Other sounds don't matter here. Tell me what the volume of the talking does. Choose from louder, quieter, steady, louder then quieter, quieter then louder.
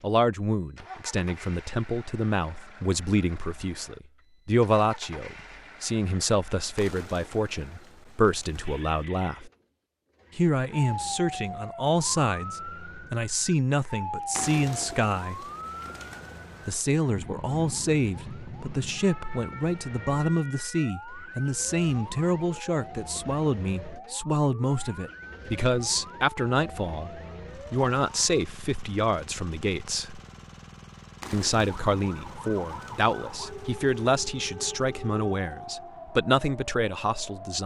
steady.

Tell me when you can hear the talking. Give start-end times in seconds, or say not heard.
0.0-9.5, 10.3-15.4, 16.6-30.2, 31.3-37.6.